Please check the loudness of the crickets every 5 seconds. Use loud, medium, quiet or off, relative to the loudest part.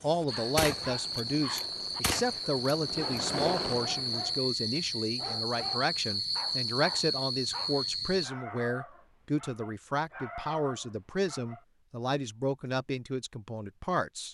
loud, loud, off.